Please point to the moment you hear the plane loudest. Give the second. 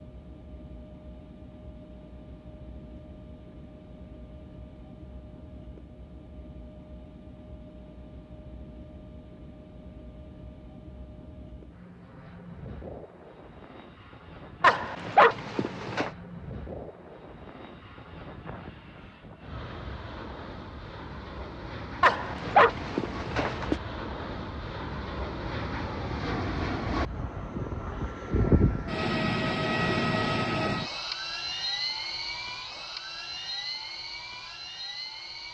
29 s.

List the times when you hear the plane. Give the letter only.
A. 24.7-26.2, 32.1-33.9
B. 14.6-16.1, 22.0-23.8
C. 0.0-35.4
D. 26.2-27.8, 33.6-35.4
C.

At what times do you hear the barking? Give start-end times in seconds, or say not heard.
14.6-16.1, 22.0-23.8.